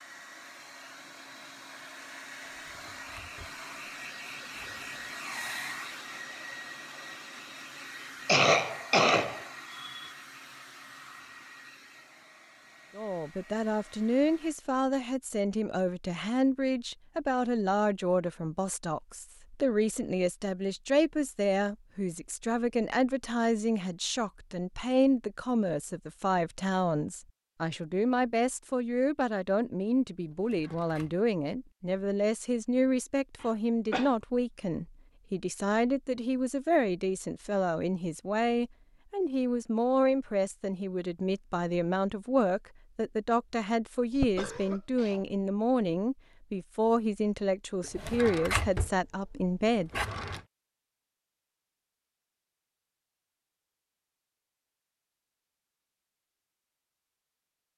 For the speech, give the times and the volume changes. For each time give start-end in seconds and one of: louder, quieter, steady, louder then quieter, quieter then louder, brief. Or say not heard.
12.9-49.9 steady.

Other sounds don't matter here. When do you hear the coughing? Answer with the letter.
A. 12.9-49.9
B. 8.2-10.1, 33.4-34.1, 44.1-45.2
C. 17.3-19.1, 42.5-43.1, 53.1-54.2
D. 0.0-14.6
B.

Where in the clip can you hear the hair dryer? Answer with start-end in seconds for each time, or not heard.
0.0-14.6.